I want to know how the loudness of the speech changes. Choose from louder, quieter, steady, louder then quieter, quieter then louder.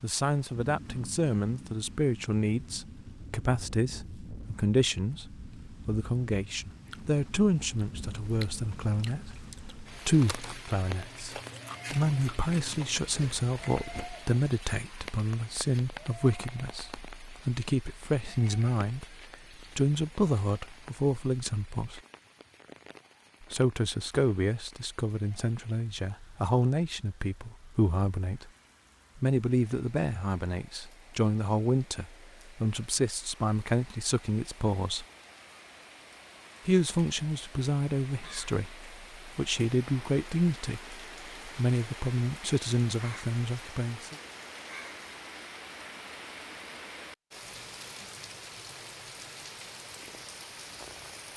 steady.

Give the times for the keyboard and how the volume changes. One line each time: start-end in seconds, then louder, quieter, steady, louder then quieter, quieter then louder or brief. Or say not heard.
not heard.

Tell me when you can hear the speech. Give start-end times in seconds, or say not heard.
0.0-22.0, 23.4-28.5, 29.1-35.0, 36.6-44.1.